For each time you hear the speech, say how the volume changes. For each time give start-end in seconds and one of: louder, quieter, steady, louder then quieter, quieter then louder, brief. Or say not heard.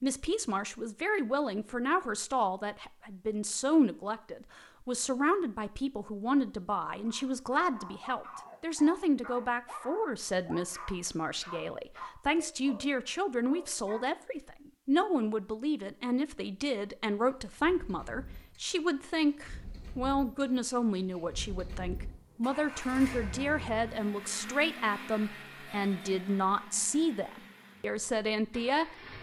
0.0-28.9 steady.